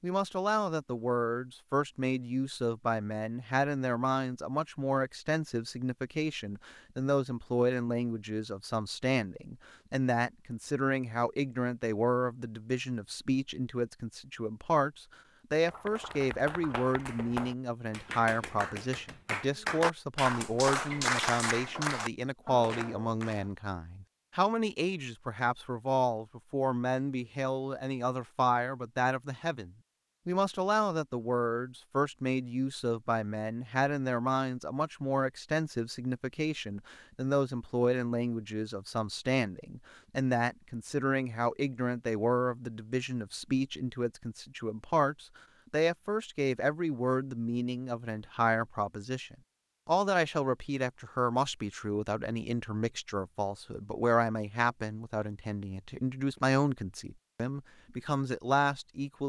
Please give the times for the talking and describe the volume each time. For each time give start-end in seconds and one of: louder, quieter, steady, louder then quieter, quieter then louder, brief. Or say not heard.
0.0-59.2 steady.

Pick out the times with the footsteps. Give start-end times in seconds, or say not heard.
not heard.